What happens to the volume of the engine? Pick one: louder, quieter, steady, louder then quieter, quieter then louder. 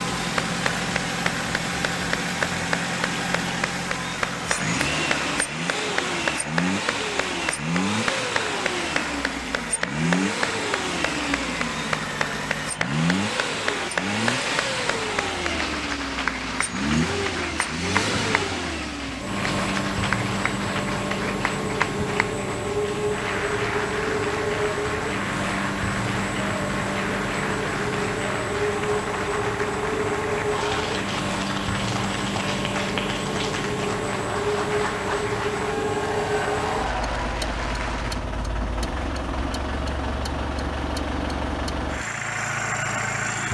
steady.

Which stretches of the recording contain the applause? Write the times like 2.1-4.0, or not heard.
0.0-38.2.